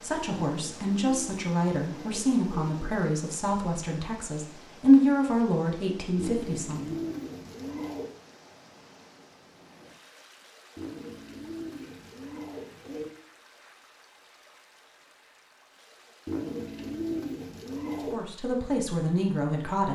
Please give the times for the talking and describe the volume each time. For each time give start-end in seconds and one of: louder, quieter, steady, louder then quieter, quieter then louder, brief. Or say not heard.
0.0-7.0 louder then quieter
18.1-19.9 brief.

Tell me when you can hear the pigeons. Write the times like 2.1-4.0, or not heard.
0.5-2.8, 6.2-8.1, 10.8-13.1, 16.2-18.1.